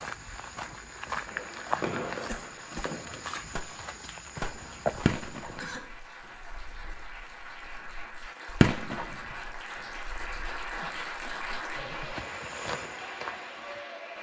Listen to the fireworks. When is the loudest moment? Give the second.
9 s.